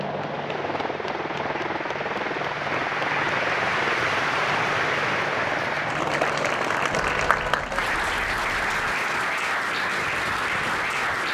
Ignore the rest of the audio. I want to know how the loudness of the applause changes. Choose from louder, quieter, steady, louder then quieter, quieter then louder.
louder.